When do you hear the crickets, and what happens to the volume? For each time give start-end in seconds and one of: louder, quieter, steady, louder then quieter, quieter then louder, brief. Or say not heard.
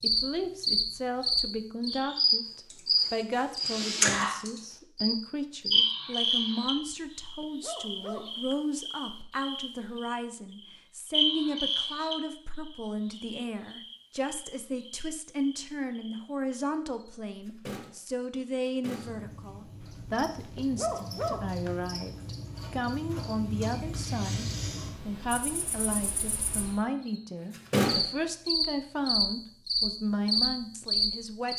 0.0-31.5 quieter then louder.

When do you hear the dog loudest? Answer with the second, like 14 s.
21 s.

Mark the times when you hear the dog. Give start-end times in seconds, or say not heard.
6.7-8.6, 19.8-21.7.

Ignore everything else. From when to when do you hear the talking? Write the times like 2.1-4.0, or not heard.
0.0-24.4, 25.1-31.5.